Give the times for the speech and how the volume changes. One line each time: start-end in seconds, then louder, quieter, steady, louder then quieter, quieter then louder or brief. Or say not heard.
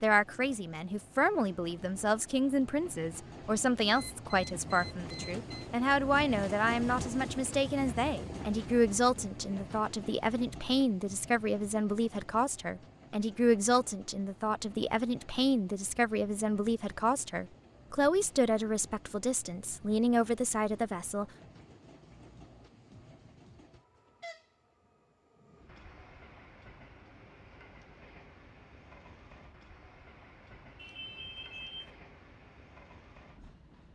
0.0-21.2 steady.